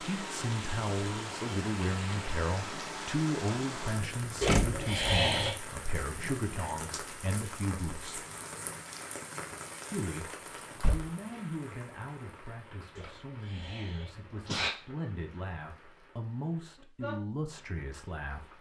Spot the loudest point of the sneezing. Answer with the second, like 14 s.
5 s.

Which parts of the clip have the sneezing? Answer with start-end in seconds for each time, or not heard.
4.4-5.5, 12.9-14.7.